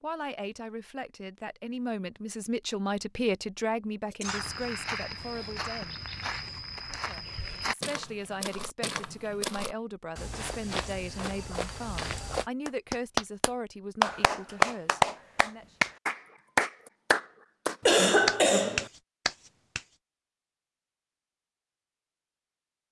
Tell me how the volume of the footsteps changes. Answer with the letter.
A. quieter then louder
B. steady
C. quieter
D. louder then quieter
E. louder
B.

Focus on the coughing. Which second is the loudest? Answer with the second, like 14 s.
18 s.